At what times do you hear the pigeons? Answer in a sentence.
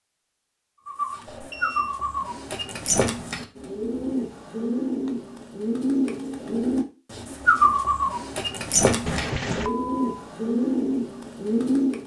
The pigeons can be heard from 0.8 to 12.0 s.